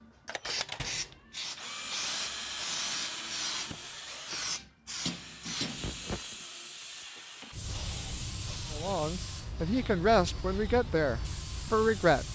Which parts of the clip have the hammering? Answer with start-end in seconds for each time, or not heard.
4.6-6.2.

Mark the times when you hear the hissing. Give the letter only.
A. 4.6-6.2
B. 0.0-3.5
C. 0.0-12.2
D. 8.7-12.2
C.